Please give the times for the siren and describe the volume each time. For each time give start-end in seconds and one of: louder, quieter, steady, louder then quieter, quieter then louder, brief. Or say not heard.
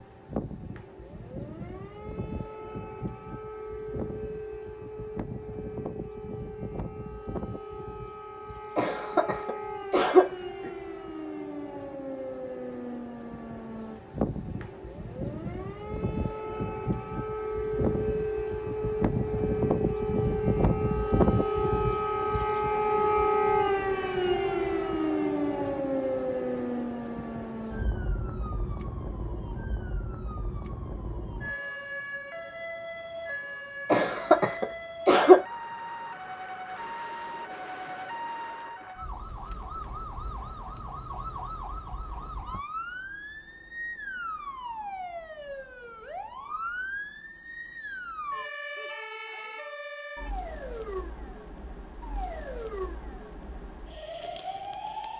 0.0-55.1 louder then quieter.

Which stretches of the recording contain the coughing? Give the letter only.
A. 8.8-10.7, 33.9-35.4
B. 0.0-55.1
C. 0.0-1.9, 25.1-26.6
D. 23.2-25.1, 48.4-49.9
A.